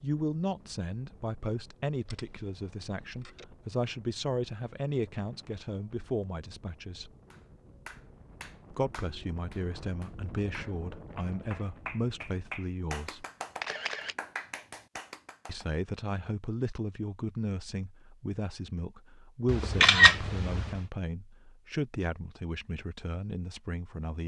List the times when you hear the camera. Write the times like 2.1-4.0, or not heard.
2.0-3.5, 13.6-14.2, 19.4-20.8.